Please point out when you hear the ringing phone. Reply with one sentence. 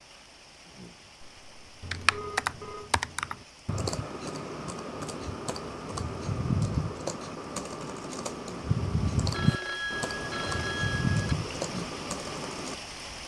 You can hear the ringing phone from 1.2 to 2.9 s and from 9.3 to 11.3 s.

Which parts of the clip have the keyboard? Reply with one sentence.
The keyboard can be heard from 1.8 to 12.8 s.